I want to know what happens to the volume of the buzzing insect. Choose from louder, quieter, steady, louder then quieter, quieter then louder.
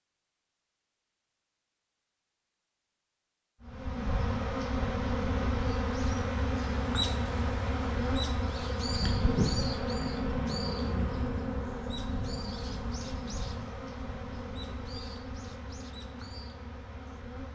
quieter.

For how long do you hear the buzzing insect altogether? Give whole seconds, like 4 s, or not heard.
14 s.